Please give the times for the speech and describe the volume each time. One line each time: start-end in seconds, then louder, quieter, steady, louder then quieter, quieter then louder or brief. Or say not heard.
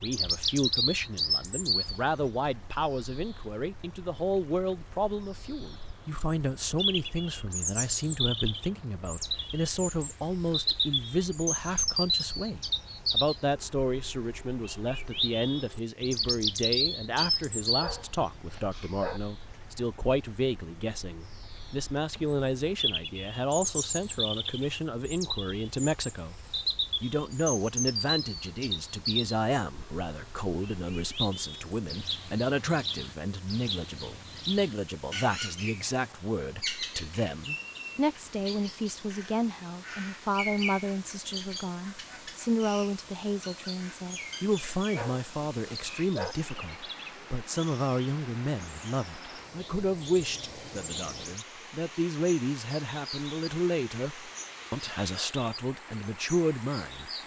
0.0-26.4 steady
27.0-57.1 steady.